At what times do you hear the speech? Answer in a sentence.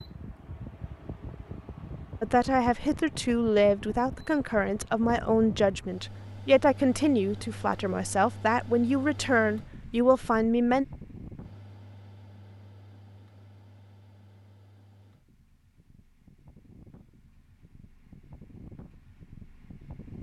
The speech can be heard from 2.2 to 10.8 s.